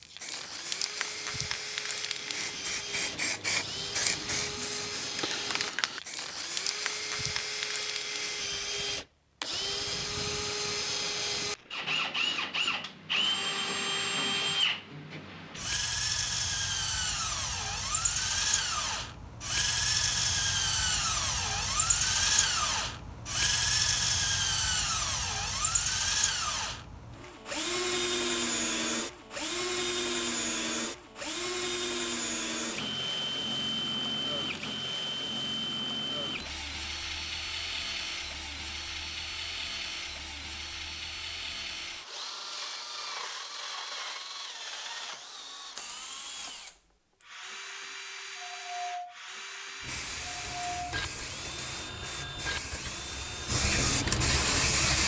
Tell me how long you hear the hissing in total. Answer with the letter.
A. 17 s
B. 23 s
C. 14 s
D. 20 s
C.